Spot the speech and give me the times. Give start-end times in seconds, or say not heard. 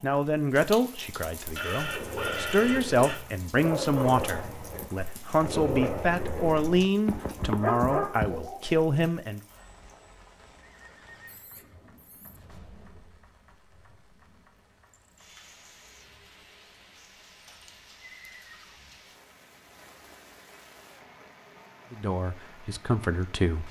0.0-9.4, 21.9-23.6.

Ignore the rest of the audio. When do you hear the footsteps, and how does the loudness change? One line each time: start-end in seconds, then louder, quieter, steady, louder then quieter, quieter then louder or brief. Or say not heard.
not heard.